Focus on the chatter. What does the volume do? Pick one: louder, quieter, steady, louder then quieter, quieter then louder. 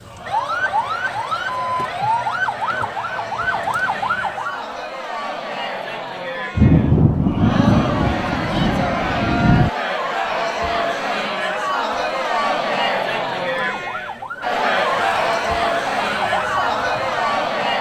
louder.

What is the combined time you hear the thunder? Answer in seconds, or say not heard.
3 s.